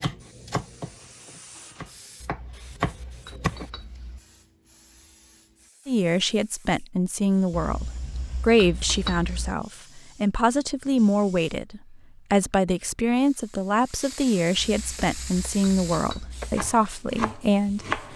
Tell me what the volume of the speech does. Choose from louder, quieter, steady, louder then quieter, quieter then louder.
steady.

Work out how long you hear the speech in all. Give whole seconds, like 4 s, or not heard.
12 s.